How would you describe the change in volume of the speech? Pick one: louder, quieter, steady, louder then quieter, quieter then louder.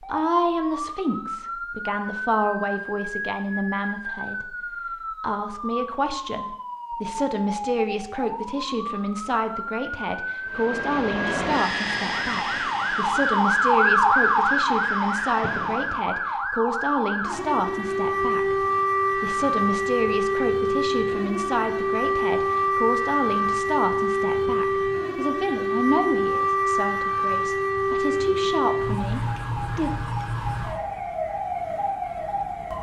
steady.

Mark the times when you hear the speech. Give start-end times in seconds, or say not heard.
0.0-29.9.